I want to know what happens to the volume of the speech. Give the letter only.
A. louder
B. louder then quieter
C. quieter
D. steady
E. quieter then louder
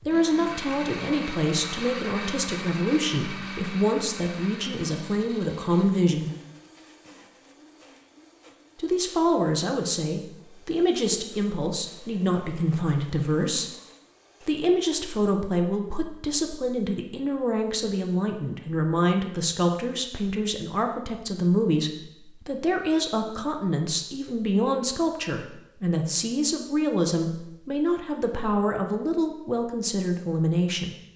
D.